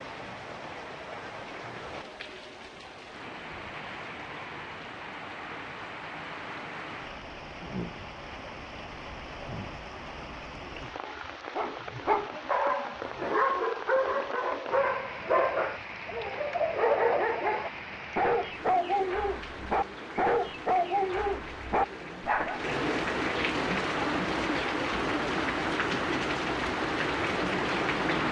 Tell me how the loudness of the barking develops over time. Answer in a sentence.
The volume of the barking stays about the same.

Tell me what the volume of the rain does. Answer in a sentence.
The volume of the rain goes up.